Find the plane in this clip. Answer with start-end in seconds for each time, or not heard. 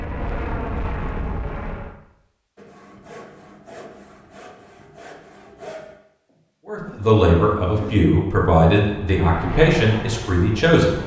0.0-1.9, 8.8-11.0.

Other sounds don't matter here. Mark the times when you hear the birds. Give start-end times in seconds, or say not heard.
not heard.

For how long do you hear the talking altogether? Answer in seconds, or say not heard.
4 s.